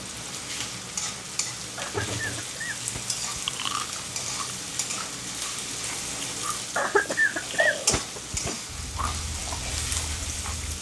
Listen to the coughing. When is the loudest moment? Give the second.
7 s.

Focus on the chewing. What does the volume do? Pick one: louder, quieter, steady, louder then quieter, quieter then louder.
louder then quieter.